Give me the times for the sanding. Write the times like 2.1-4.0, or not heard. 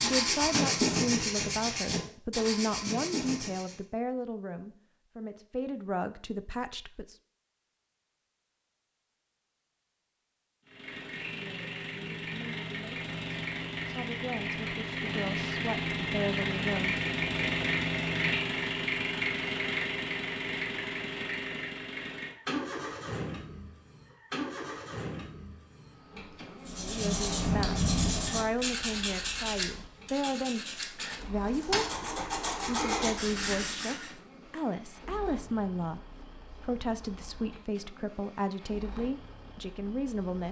0.0-3.8, 26.6-34.1.